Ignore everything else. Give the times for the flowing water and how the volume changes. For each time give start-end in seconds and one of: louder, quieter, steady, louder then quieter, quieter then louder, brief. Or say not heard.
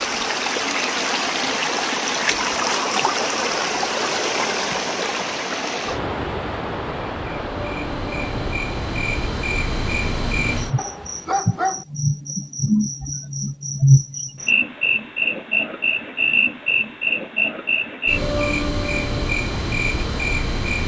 0.0-11.3 quieter.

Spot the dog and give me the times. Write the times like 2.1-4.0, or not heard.
10.8-11.8.